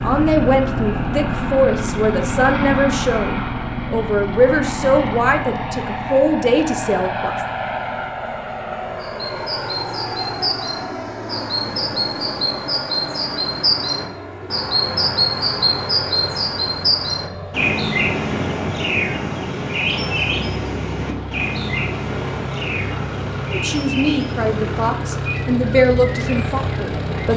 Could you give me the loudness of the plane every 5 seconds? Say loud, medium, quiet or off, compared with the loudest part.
loud, loud, medium, medium, medium, loud.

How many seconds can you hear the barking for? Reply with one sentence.
The barking can't be heard in this clip.